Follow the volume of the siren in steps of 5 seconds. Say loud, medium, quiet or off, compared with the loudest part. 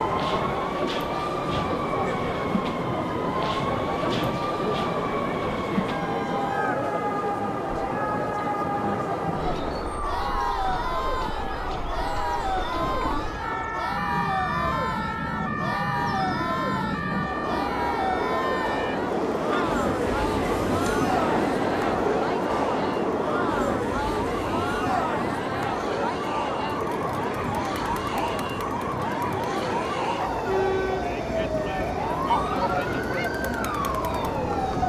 loud, loud, loud, loud, medium, loud, loud.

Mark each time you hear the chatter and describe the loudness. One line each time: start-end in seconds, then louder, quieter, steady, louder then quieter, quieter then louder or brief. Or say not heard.
0.0-34.8 steady.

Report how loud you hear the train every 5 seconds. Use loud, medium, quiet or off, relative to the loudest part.
medium, medium, medium, loud, loud, medium, medium.